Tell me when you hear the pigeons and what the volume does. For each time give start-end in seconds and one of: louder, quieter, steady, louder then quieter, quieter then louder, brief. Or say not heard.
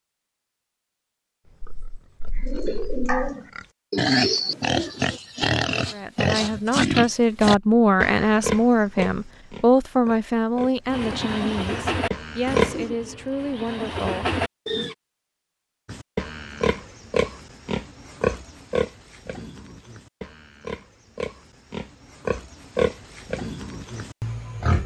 2.4-5.2 brief
10.8-14.9 quieter then louder.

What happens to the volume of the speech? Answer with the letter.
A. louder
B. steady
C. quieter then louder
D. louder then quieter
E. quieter
E.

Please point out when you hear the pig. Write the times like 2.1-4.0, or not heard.
1.6-12.8, 15.8-24.8.